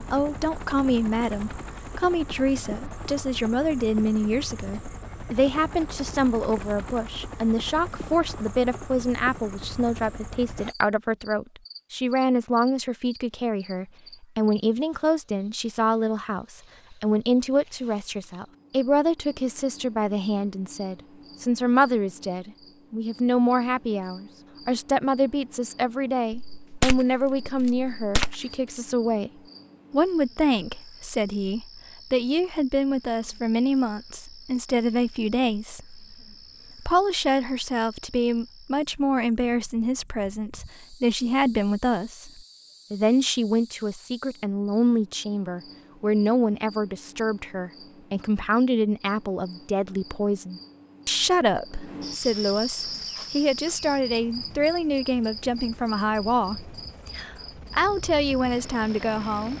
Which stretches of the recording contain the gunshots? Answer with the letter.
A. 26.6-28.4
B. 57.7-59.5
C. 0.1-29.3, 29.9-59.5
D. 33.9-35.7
A.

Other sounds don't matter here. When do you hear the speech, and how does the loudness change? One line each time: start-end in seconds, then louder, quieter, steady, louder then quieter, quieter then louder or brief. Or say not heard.
0.1-29.3 steady
29.9-59.5 steady.